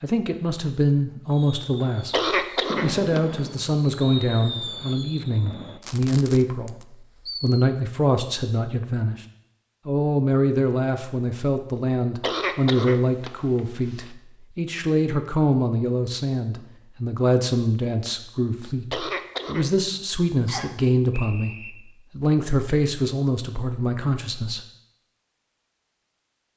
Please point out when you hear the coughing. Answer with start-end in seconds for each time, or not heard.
2.1-3.2, 12.2-14.1, 18.9-19.8.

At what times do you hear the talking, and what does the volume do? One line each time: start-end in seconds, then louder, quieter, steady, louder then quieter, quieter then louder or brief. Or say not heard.
0.0-9.2 steady
9.8-24.6 steady.